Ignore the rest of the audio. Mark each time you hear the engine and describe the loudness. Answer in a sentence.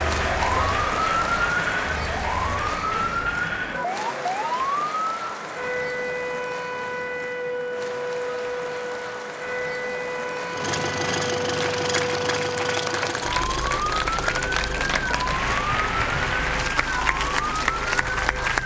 The engine can be heard from 10.5 to 18.5 s, getting quieter.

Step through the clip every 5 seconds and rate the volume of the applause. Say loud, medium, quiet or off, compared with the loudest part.
loud, medium, loud, loud.